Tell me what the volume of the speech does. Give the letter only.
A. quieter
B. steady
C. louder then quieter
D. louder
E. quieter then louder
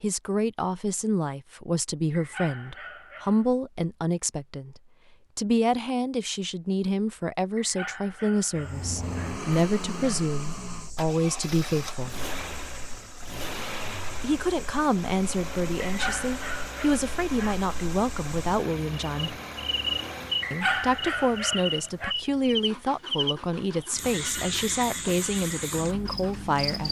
B.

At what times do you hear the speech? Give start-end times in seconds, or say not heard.
0.0-12.2, 14.2-19.4, 20.5-26.8.